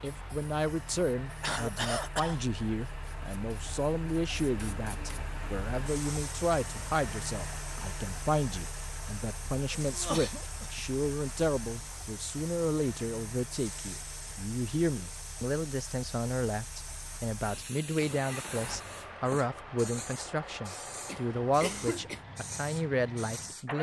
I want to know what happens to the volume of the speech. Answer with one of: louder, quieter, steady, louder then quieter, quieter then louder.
steady.